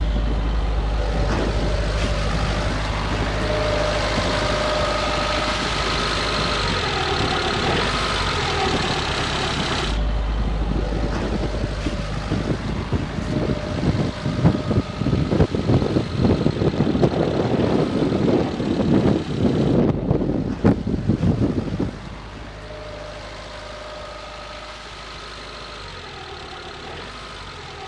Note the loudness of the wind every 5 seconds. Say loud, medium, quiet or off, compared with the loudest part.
quiet, quiet, medium, loud, loud, off.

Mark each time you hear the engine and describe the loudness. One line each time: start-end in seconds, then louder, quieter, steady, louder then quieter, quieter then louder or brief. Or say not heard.
0.0-27.8 quieter.